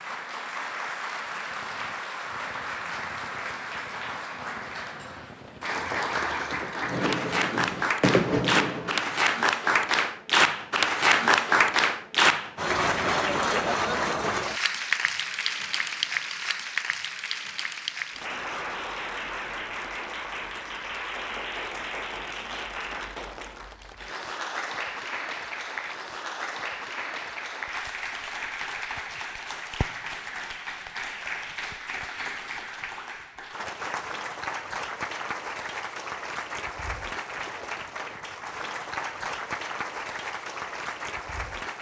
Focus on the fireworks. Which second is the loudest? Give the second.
8 s.